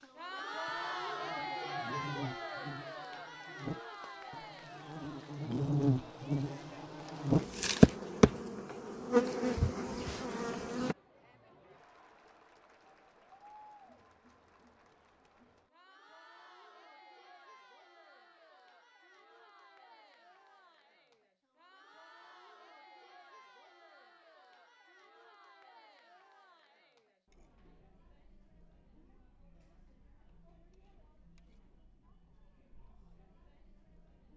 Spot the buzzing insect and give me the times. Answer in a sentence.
You can hear the buzzing insect from 0.0 to 10.9 s.